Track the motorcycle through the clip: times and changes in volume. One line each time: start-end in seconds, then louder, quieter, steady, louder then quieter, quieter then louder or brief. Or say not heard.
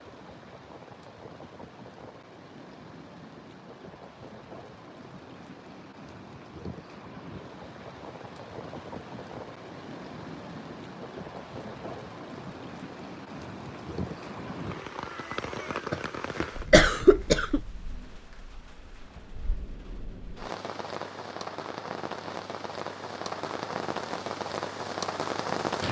not heard.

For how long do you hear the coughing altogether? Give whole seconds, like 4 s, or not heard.
2 s.